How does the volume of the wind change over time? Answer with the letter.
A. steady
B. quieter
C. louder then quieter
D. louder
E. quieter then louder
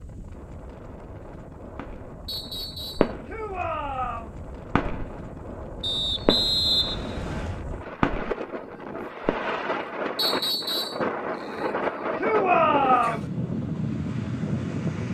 D.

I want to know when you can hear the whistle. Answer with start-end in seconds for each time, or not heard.
2.2-3.1, 5.8-7.6, 10.2-11.0.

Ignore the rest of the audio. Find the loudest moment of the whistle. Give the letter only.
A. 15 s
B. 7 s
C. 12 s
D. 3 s
B.